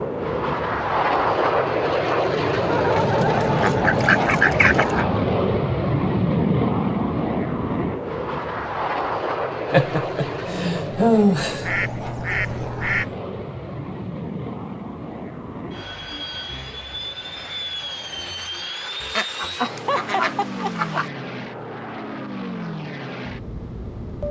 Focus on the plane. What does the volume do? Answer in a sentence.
The loudness of the plane goes down.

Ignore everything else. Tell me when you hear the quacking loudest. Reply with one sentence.
The loudest moment of the quacking is at 5 seconds.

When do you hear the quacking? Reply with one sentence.
You can hear the quacking from 3.0 to 5.0 s, from 11.6 to 13.2 s and from 19.1 to 21.1 s.